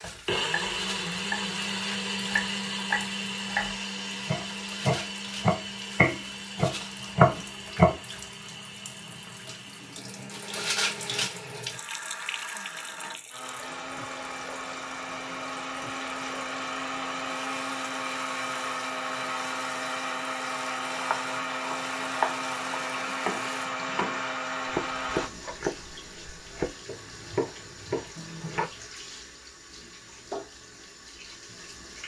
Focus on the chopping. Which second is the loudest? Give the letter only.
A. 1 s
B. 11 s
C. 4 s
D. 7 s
D.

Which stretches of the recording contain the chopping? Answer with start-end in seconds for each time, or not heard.
0.1-1.4, 2.2-8.0, 20.8-28.7.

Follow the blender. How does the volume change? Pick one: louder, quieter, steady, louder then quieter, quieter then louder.
quieter then louder.